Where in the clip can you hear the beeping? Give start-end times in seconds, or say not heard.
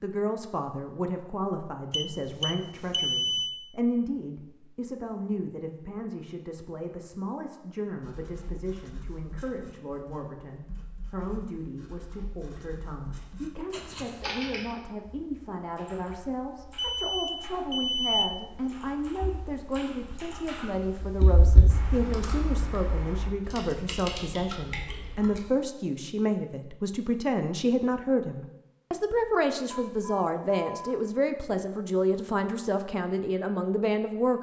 1.9-3.5, 16.8-18.6, 29.7-31.0.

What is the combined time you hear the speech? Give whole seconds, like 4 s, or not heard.
34 s.